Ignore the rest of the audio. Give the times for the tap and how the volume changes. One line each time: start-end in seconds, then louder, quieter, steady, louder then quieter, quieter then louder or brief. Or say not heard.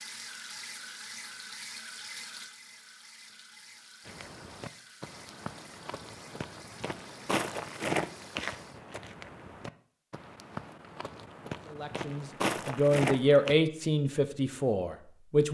0.0-8.8 quieter.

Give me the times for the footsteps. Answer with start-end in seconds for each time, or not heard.
4.0-13.6.